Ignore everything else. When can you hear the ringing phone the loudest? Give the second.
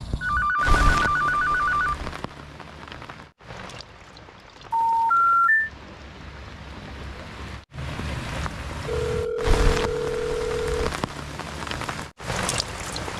5 s.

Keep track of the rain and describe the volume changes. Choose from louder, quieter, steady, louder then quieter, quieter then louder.
quieter then louder.